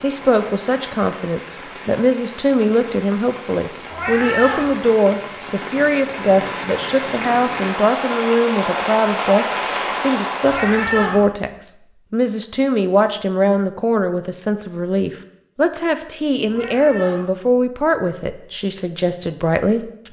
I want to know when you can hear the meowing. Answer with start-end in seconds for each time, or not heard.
3.9-4.7, 10.4-11.2, 16.4-17.3.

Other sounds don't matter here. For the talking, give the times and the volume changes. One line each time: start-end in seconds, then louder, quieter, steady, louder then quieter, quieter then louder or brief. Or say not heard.
0.0-20.0 steady.